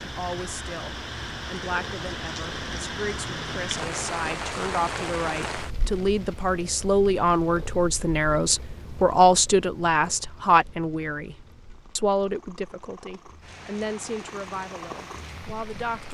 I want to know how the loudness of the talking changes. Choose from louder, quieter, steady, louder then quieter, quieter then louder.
louder then quieter.